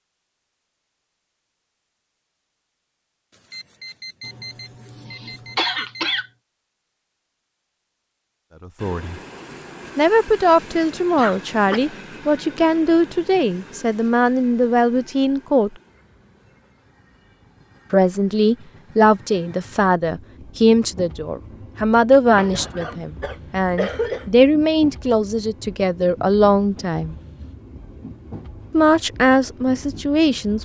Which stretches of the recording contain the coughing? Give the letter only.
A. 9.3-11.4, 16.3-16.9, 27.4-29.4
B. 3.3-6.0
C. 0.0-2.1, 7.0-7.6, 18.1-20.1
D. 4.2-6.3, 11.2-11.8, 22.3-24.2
D.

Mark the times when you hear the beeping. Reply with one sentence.
The beeping can be heard from 3.3 to 6.0 s.